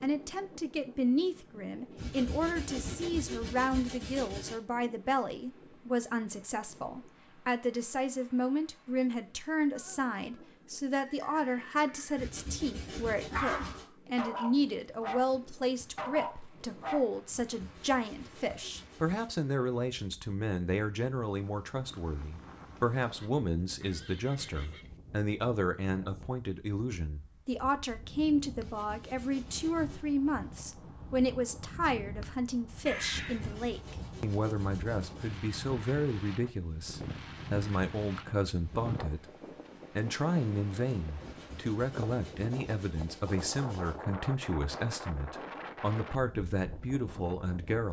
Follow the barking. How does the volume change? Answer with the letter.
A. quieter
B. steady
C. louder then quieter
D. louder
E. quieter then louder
B.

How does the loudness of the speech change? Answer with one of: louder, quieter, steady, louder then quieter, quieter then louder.
steady.